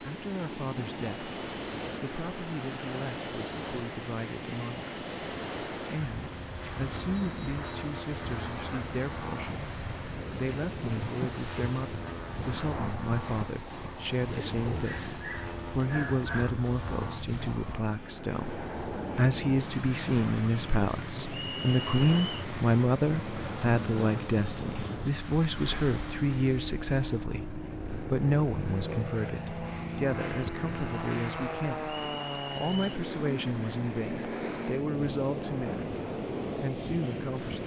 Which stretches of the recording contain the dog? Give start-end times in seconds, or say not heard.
14.8-16.5.